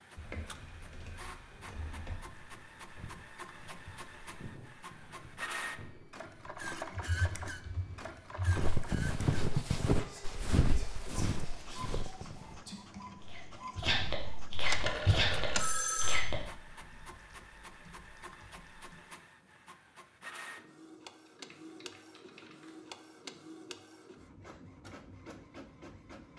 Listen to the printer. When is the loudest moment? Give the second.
7 s.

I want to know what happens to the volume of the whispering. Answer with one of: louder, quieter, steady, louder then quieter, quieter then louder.
louder.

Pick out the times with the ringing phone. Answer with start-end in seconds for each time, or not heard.
14.6-16.2.